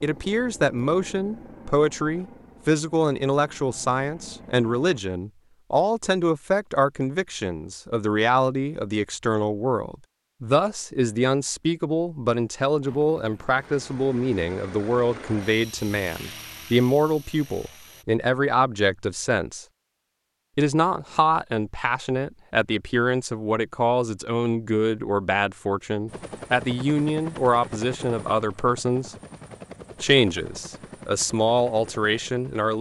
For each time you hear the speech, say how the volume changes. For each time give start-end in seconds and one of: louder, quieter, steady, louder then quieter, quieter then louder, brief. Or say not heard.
0.0-19.6 steady
20.6-29.1 steady
30.0-32.7 brief.